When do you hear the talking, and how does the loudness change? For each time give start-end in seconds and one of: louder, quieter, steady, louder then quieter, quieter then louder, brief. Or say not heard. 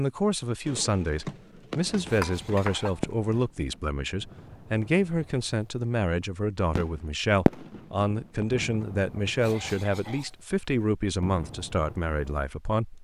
0.0-12.9 steady.